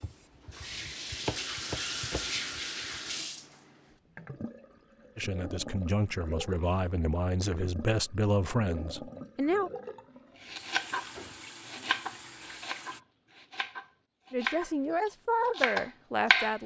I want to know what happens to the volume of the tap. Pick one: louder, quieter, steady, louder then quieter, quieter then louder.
quieter.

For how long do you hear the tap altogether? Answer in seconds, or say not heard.
13 s.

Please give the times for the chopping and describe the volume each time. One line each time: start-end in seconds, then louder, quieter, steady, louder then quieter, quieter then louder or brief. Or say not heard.
0.0-2.6 brief
10.5-16.6 quieter then louder.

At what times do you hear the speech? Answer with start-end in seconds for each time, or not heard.
5.2-9.7, 14.3-16.6.